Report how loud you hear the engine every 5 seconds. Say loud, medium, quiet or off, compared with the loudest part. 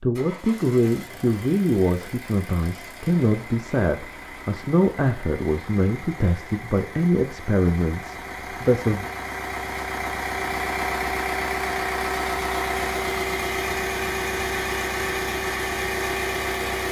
quiet, medium, loud, loud.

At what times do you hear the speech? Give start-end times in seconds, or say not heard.
0.0-9.1.